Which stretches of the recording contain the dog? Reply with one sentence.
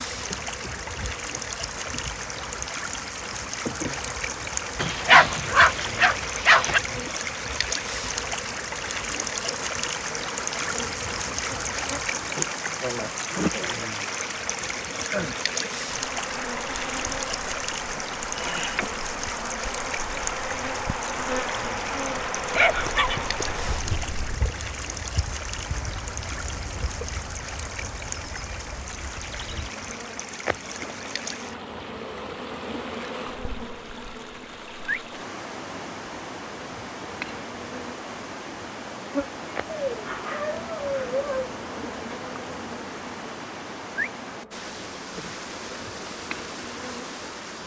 You can hear the dog from 4.8 to 6.8 s, from 22.6 to 24.4 s and from 39.7 to 41.5 s.